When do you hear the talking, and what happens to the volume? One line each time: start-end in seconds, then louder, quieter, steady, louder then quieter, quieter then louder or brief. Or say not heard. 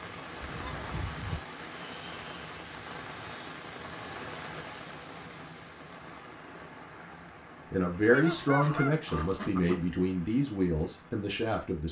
7.7-11.8 quieter.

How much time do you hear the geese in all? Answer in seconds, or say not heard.
3 s.